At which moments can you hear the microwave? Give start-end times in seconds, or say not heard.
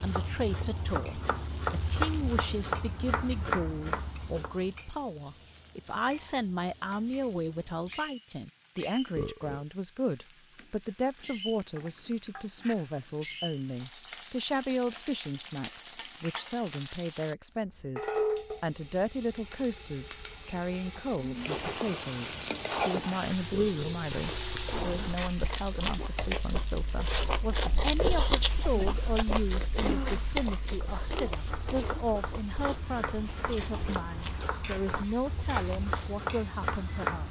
not heard.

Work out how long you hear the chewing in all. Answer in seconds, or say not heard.
12 s.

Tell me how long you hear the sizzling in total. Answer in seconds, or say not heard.
37 s.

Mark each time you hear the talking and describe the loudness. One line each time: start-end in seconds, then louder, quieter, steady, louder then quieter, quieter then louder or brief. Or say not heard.
0.0-37.2 steady.